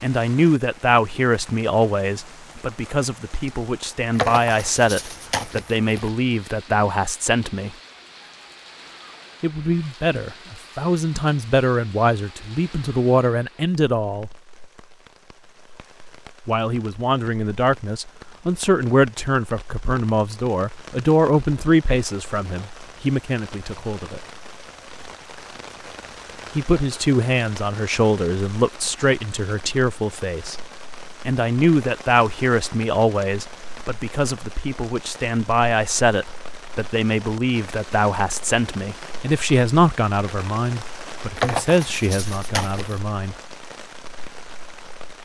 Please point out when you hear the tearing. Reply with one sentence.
The tearing can be heard from 4.2 to 6.1 s and from 41.4 to 43.0 s.